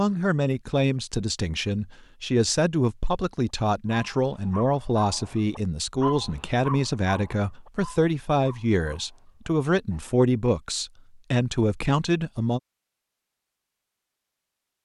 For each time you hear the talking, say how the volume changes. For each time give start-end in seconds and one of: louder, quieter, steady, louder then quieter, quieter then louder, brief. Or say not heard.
0.0-12.6 steady.